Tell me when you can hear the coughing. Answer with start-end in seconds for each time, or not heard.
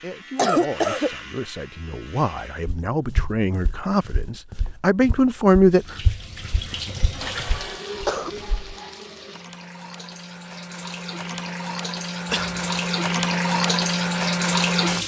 0.3-1.1, 6.7-8.3, 12.3-12.8.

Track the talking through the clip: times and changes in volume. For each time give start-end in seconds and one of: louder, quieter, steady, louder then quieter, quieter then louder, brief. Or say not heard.
0.0-6.0 louder.